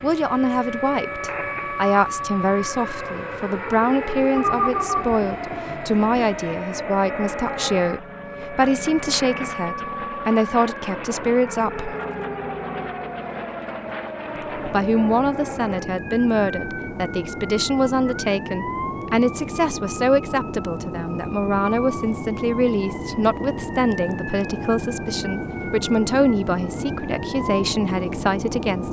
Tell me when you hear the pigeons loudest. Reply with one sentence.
The loudest moment of the pigeons is at 5 seconds.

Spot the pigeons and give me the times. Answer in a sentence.
The pigeons can be heard from 4.3 to 6.3 s.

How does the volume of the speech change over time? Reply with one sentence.
The volume of the speech stays about the same.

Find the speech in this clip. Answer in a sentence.
The speech can be heard from 0.0 to 11.9 s and from 14.3 to 28.8 s.